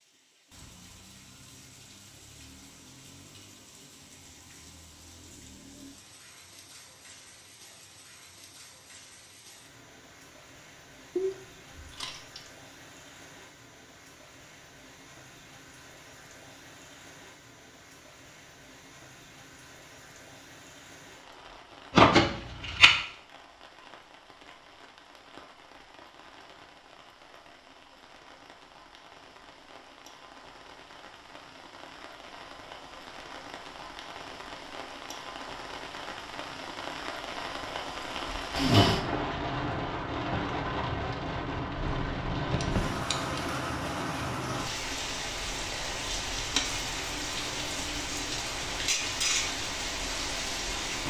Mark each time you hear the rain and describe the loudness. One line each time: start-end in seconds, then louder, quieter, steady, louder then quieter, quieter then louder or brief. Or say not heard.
0.0-51.0 louder.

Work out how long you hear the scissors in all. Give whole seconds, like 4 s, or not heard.
4 s.